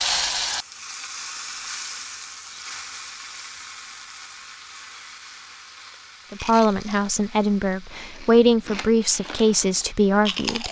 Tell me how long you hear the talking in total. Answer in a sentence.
You can hear the talking for 4 seconds altogether.